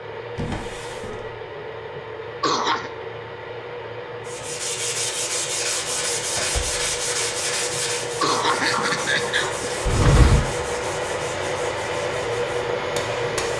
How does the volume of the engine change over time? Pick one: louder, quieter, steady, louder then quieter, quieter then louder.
louder.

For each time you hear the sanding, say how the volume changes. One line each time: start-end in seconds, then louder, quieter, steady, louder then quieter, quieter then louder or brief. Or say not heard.
4.2-13.5 quieter.